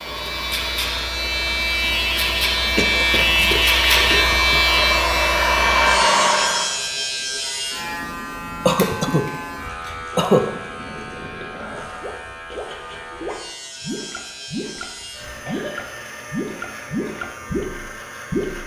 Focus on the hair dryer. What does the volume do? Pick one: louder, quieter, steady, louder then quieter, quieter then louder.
louder.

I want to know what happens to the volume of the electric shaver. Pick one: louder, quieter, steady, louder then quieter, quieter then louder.
quieter.